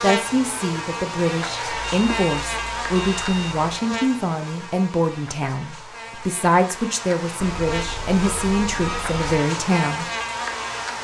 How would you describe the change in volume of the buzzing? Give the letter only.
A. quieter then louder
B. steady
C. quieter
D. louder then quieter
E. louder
A.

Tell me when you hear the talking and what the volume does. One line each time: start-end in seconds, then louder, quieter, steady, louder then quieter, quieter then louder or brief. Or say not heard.
0.0-10.1 steady.